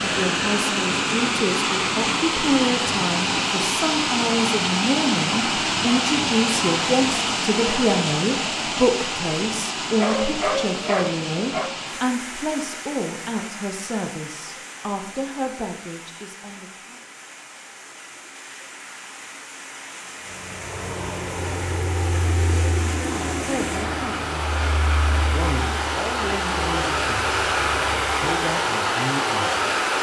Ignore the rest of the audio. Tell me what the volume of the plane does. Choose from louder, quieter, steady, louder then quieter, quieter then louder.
quieter.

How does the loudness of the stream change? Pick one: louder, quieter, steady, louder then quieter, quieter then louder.
quieter then louder.